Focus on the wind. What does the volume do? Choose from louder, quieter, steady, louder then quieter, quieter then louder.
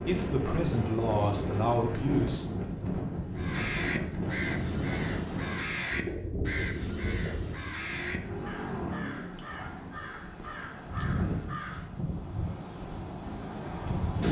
quieter then louder.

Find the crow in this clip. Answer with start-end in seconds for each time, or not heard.
3.4-12.0.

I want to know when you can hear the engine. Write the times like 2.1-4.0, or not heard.
6.8-9.4.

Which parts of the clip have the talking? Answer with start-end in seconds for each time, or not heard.
0.0-2.5.